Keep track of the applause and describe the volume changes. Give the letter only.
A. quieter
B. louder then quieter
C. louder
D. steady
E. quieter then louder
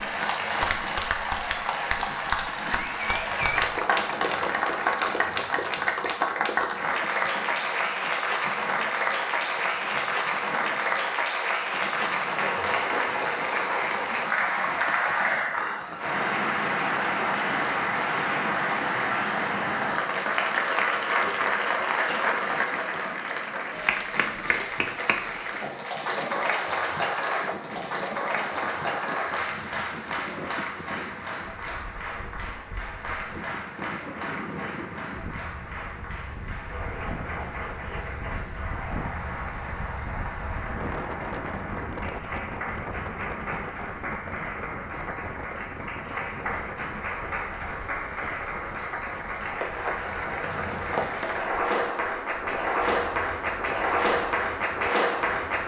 E.